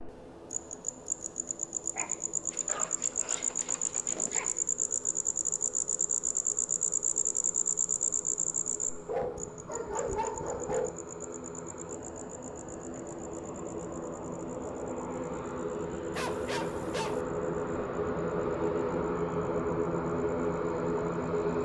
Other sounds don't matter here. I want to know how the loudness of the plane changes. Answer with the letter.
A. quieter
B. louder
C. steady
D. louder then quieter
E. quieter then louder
B.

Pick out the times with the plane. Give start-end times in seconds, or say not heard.
0.0-21.6.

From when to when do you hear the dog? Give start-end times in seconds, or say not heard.
1.9-4.5, 9.1-10.9, 16.1-17.2.